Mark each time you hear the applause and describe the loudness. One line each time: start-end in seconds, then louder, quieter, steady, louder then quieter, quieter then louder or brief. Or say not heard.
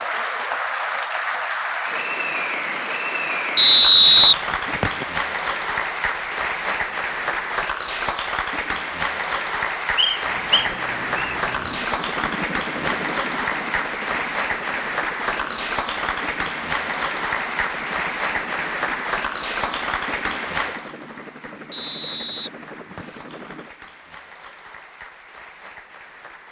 0.0-26.4 quieter.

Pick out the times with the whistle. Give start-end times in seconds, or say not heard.
3.5-5.0, 9.9-11.3, 21.7-23.2.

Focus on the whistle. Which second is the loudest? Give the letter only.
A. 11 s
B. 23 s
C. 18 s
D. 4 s
D.